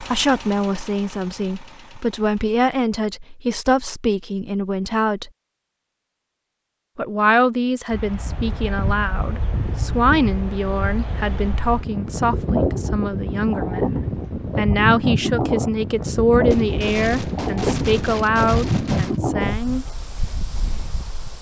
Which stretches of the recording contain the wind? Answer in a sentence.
You can hear the wind from 7.9 to 21.3 s.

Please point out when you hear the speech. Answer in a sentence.
You can hear the speech from 0.0 to 5.3 s and from 7.0 to 19.9 s.